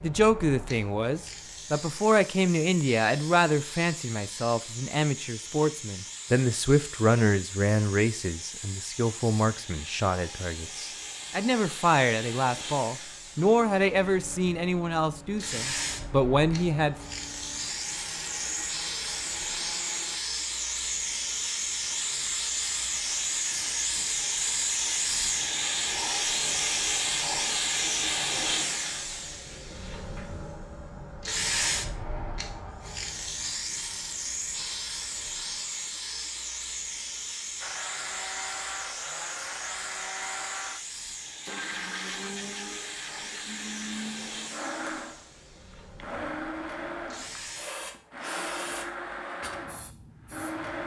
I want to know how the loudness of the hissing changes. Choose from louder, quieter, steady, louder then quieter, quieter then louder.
louder then quieter.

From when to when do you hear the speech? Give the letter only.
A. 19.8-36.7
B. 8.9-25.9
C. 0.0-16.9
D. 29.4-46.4
C.